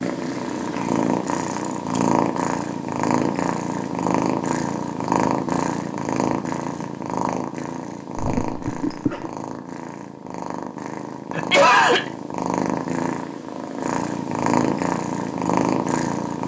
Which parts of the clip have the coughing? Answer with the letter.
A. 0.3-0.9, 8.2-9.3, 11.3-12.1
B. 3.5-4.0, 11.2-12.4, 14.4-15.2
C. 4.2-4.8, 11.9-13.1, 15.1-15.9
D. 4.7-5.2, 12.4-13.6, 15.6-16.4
A.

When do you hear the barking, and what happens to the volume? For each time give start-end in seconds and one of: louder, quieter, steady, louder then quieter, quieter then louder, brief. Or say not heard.
not heard.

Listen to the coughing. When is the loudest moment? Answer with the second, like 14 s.
12 s.